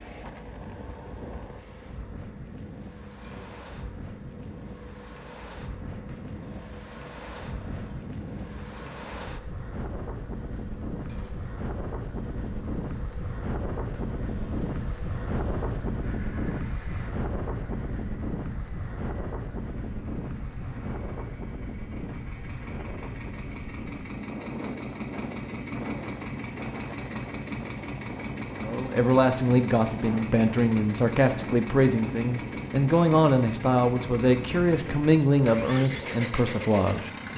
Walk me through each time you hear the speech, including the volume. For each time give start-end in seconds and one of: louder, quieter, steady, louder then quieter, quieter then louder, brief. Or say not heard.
28.6-37.1 steady.